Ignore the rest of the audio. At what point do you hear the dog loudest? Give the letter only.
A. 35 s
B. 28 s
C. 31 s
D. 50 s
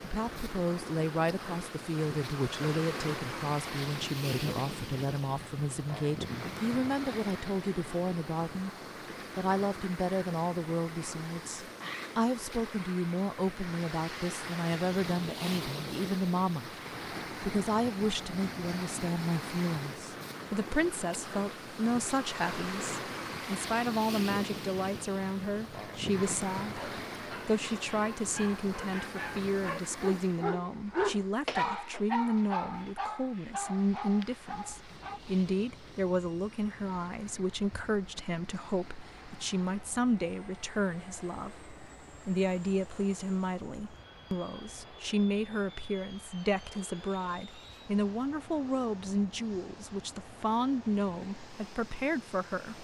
C.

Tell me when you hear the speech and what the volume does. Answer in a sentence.
You can hear the speech from 0.0 to 8.7 s, at a steady volume; from 9.3 to 16.7 s, at a steady volume; and from 17.4 to 52.7 s, at a steady volume.